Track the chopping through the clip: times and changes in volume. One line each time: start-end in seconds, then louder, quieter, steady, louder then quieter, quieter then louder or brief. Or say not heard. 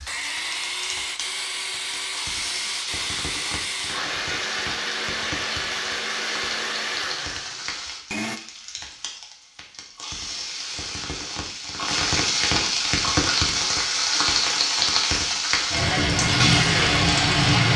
not heard.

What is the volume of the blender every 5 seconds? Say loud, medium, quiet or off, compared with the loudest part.
loud, loud, off, off.